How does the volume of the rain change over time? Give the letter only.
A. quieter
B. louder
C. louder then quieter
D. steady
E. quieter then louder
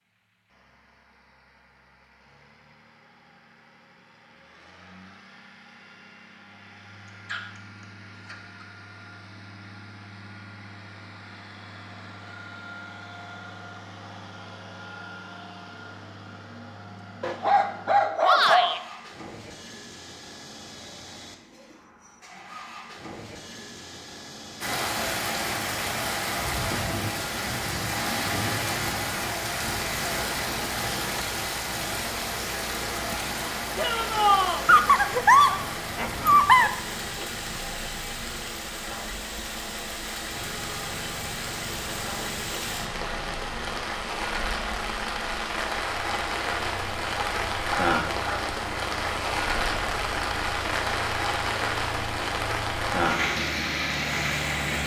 E.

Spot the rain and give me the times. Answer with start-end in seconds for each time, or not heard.
24.6-54.8.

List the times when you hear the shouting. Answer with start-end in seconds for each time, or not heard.
18.2-18.8, 33.8-34.6.